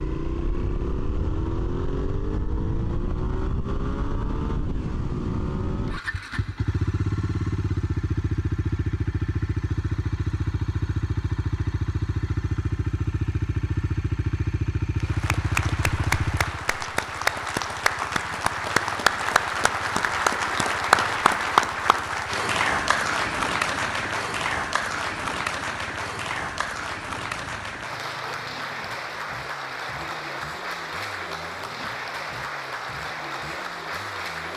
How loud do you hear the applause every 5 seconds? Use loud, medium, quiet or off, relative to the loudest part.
off, off, off, loud, loud, medium, medium.